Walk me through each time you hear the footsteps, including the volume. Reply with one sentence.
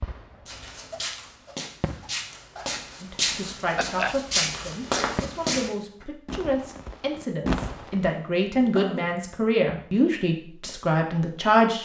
The footsteps can be heard from 0.5 to 6.0 s, getting louder.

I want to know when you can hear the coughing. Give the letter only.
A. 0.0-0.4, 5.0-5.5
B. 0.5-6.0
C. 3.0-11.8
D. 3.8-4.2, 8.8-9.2
D.